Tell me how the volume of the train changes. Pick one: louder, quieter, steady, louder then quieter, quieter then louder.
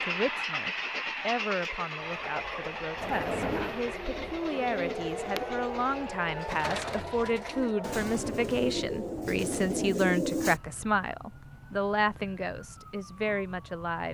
quieter.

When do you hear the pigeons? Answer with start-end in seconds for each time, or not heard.
3.0-10.6.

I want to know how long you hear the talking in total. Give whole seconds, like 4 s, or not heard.
14 s.